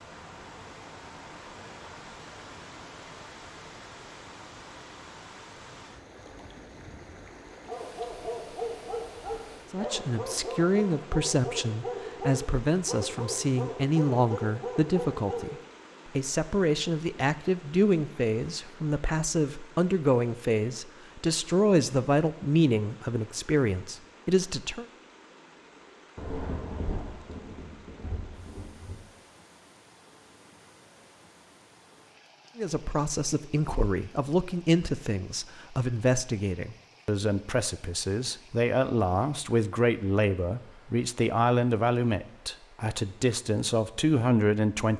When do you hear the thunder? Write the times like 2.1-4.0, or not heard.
26.1-29.1.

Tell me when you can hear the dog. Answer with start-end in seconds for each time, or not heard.
7.5-15.7.